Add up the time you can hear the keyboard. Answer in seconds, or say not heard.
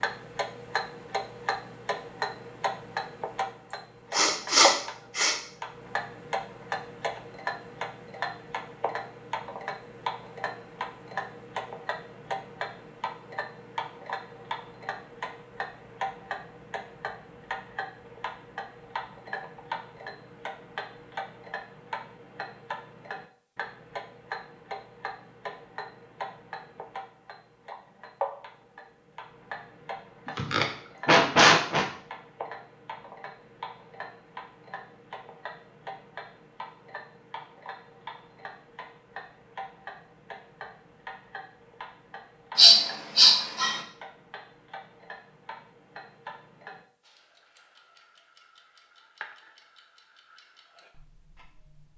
not heard.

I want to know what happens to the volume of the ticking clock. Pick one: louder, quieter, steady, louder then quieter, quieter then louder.
quieter.